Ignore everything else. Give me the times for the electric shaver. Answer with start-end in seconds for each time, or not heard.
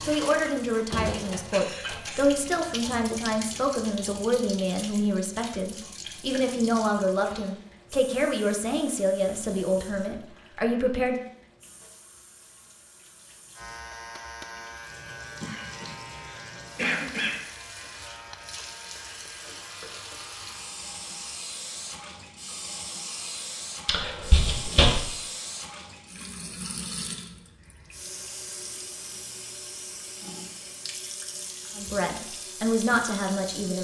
13.6-21.4.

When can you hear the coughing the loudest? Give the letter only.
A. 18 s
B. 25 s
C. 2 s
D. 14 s
B.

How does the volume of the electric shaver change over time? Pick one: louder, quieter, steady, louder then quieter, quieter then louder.
quieter.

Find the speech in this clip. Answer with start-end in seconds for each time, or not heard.
0.0-11.2, 31.8-33.7.